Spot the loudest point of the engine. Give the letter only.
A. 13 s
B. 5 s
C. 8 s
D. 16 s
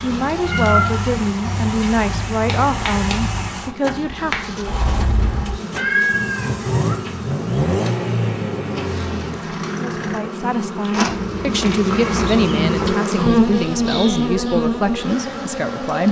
C.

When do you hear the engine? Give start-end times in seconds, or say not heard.
0.0-10.2.